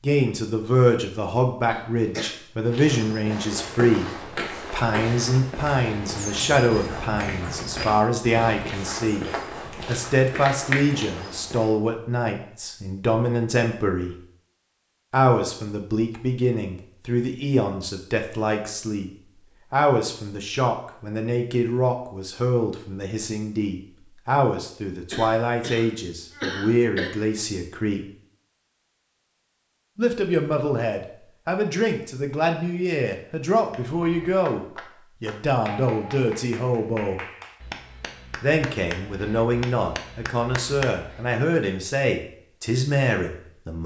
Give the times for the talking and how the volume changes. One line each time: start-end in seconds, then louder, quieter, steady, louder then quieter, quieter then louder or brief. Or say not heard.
0.0-14.2 steady
15.1-28.1 steady
29.9-37.2 steady
38.4-43.8 steady.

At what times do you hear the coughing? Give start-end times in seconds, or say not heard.
1.6-2.4, 25.1-27.1.